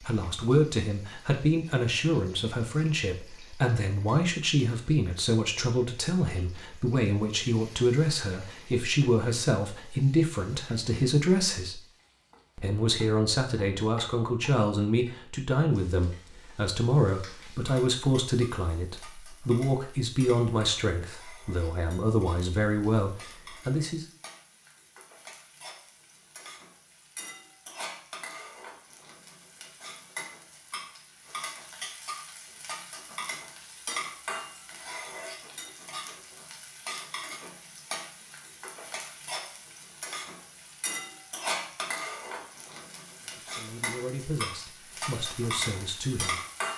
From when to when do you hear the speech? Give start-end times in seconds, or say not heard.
0.0-11.8, 12.6-24.1, 43.2-46.4.